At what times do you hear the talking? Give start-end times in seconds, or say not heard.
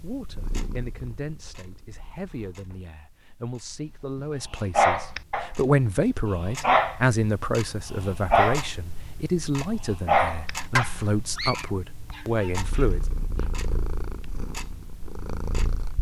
0.0-13.1.